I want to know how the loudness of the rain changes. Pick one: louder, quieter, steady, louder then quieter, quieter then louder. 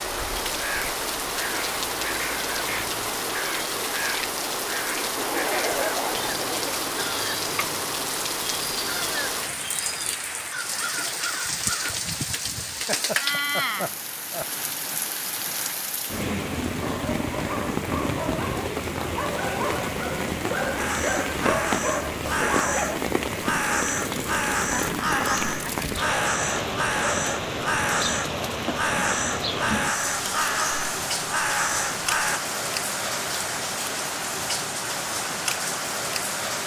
steady.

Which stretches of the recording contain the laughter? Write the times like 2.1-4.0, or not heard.
5.1-6.8, 12.8-14.9, 24.9-25.9.